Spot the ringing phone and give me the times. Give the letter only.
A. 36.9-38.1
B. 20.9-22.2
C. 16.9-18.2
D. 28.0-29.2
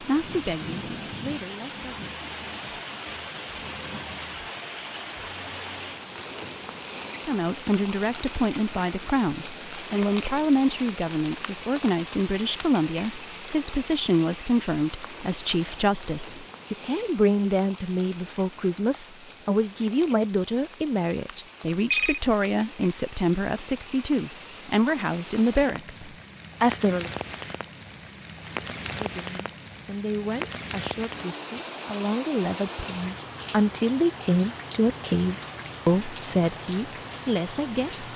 B.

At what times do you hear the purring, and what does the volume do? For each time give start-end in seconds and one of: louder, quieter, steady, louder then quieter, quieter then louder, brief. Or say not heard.
not heard.